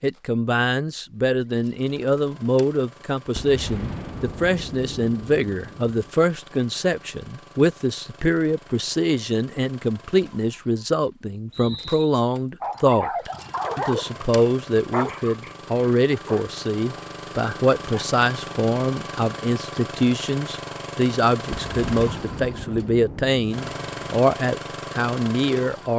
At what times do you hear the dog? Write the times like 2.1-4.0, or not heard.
12.6-18.1.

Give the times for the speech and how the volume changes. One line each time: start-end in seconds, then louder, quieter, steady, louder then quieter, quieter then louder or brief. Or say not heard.
0.0-25.9 steady.